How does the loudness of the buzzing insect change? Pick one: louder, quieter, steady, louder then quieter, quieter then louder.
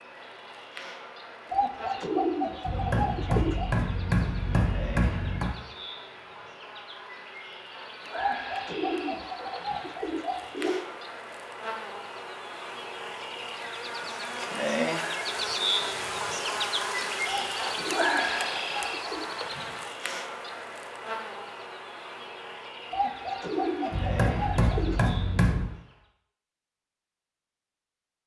louder then quieter.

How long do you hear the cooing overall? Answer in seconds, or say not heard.
9 s.